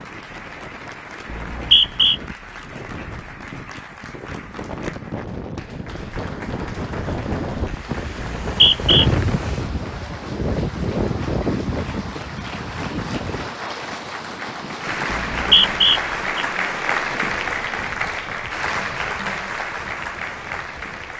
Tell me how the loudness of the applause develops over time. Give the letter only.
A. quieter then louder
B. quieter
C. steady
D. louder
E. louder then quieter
D.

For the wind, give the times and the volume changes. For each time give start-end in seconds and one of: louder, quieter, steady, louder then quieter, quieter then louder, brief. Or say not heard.
0.0-21.1 louder then quieter.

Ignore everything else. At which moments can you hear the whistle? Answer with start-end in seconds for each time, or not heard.
1.3-2.1, 8.2-9.1, 15.1-16.4.